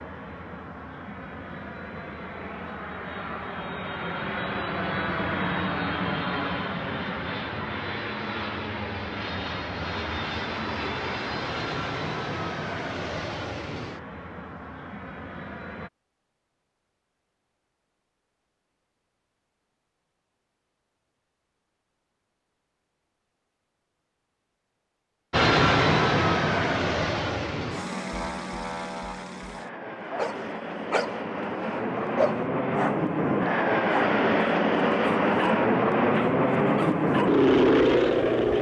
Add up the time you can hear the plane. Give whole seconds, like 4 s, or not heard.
29 s.